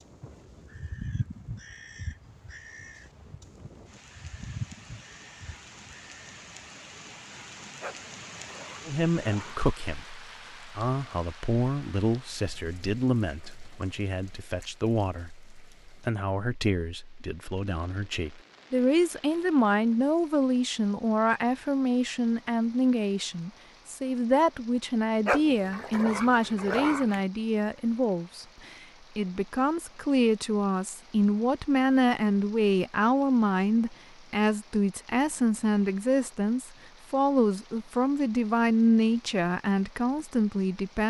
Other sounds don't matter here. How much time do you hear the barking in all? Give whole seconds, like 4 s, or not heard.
4 s.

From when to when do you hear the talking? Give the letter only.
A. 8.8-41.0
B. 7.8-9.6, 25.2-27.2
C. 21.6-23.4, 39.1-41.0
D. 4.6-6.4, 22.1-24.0
A.